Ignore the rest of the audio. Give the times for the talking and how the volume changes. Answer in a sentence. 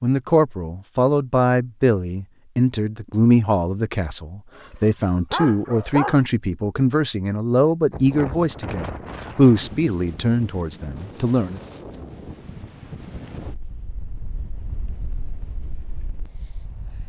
The talking can be heard from 0.0 to 11.6 s, at a steady volume.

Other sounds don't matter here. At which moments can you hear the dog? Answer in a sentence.
You can hear the dog from 4.5 to 6.2 s.